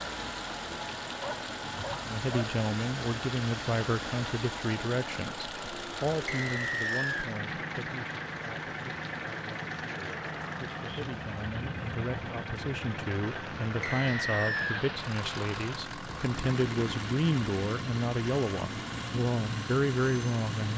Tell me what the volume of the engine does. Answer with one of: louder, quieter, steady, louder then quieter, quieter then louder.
steady.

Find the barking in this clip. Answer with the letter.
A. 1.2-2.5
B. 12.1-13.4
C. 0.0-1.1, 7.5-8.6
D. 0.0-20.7
A.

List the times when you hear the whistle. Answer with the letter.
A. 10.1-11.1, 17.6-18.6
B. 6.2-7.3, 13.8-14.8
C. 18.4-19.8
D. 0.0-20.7
B.